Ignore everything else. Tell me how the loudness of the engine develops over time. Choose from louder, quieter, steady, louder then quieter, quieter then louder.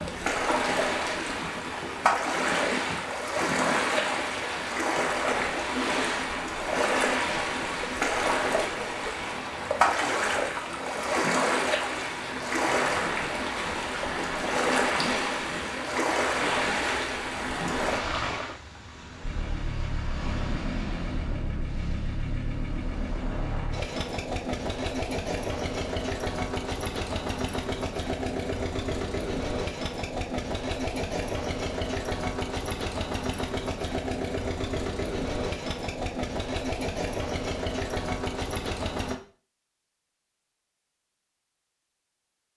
louder.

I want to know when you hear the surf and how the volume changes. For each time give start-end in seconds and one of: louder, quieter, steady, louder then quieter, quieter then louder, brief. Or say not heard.
0.0-23.9 quieter.